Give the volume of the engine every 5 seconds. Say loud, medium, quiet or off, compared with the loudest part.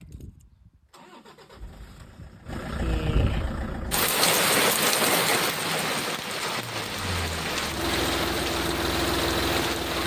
medium, loud.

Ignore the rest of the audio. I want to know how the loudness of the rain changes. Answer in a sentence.
The loudness of the rain goes down.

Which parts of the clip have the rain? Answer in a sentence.
You can hear the rain from 3.9 to 10.0 s.